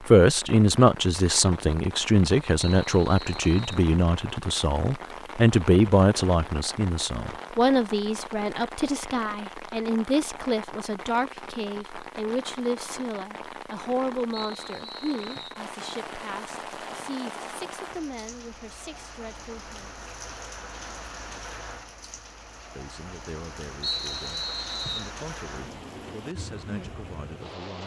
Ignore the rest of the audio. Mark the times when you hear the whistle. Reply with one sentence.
You can hear the whistle from 2.6 to 3.9 s, from 14.3 to 15.6 s and from 23.8 to 25.1 s.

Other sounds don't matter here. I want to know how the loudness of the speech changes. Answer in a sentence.
The loudness of the speech goes down.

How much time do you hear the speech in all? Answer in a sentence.
You can hear the speech for 25 seconds altogether.